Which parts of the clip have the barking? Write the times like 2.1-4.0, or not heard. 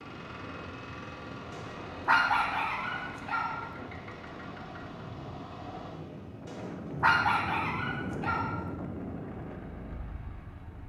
1.5-3.7, 6.5-8.7.